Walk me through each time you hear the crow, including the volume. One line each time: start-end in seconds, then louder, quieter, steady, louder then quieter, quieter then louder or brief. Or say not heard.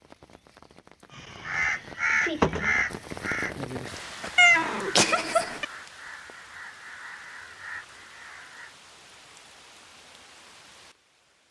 1.1-8.8 quieter.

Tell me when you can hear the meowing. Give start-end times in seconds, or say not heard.
4.3-5.7.